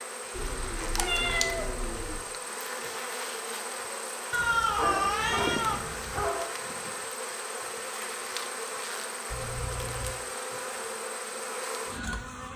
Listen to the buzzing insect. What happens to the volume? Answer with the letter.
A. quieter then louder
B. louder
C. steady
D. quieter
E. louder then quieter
C.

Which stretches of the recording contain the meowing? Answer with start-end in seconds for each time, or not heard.
0.3-2.2, 4.3-6.3, 9.3-10.2.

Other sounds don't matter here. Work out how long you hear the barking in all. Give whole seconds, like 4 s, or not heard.
2 s.